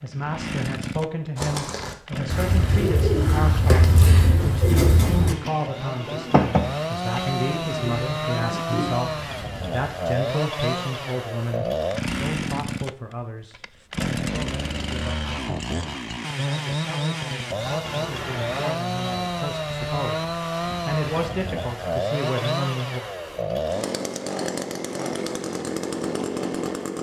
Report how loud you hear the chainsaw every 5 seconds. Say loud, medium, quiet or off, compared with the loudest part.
medium, loud, loud, loud, loud, loud.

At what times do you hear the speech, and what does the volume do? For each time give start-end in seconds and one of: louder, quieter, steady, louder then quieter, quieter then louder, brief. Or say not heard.
0.0-23.0 quieter then louder.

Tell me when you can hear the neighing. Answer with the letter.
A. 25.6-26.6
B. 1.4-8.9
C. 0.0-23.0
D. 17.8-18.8
D.